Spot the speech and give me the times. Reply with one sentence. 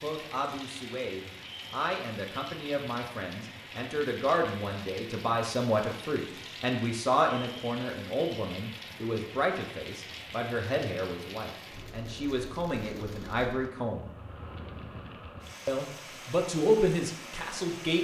The speech can be heard from 0.0 to 14.1 s and from 15.7 to 18.0 s.